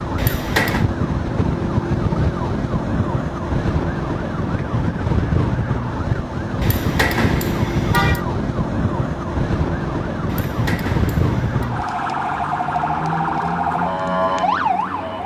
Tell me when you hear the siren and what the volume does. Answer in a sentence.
The siren can be heard from 0.0 to 15.2 s, at a steady volume.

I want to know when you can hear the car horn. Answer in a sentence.
The car horn can be heard from 0.1 to 0.8 s, from 6.6 to 8.2 s and from 10.2 to 11.8 s.